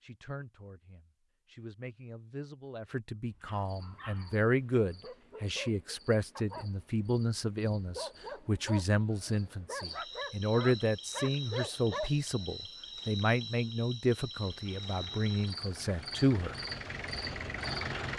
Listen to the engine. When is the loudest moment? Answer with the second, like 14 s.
18 s.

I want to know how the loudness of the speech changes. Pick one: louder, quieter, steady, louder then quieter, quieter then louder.
louder.